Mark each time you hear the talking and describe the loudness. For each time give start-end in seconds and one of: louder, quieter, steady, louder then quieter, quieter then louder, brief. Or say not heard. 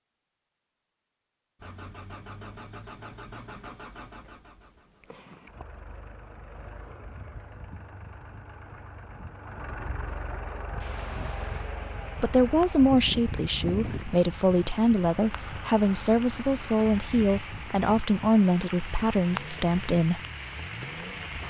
12.2-20.2 steady.